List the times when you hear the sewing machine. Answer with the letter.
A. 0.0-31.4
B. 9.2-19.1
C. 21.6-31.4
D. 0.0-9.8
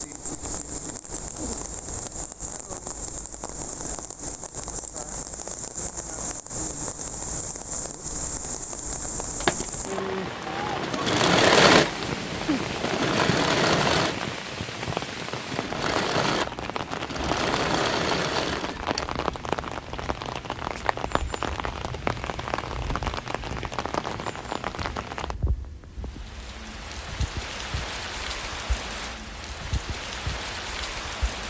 B.